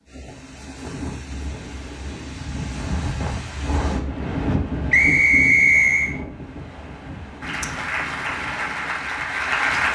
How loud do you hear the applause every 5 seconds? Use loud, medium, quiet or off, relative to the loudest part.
off, loud.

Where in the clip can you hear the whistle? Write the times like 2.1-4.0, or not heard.
4.9-6.2.